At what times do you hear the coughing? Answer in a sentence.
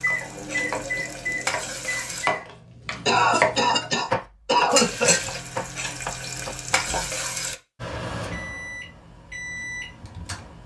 You can hear the coughing from 3.0 to 5.4 s.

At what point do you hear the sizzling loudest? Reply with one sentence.
The loudest moment of the sizzling is at 5 seconds.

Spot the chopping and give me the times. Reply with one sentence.
The chopping can be heard from 0.1 to 7.2 s.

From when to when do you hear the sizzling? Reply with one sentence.
The sizzling can be heard from 0.0 to 2.2 s and from 4.7 to 7.5 s.